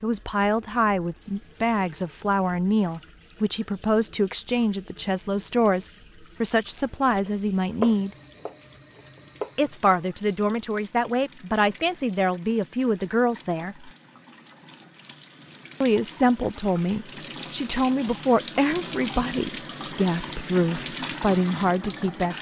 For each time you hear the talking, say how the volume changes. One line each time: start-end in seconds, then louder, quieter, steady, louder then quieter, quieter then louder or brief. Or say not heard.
0.0-8.1 steady
9.6-13.9 steady
15.8-22.3 steady.